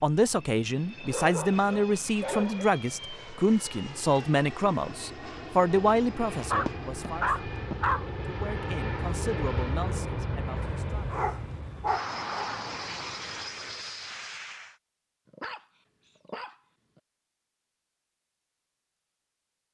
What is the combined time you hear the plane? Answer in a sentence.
You can hear the plane for 15 seconds altogether.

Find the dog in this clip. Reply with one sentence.
The dog can be heard from 1.0 to 2.6 s, from 6.5 to 8.1 s, from 10.6 to 12.6 s and from 15.3 to 17.0 s.